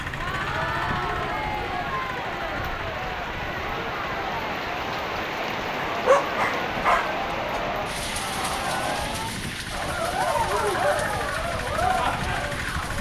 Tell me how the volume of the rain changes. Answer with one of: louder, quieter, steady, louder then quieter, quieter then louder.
louder then quieter.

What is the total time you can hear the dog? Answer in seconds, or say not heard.
2 s.